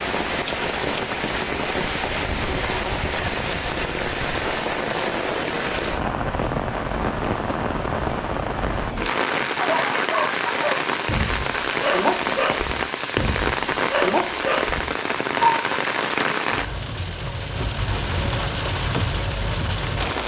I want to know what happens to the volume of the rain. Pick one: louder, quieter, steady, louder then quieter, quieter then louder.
steady.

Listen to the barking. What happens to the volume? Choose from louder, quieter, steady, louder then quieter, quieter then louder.
steady.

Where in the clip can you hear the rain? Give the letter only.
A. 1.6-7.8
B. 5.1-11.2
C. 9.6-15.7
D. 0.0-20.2
D.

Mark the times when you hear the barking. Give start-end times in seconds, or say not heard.
9.6-15.7.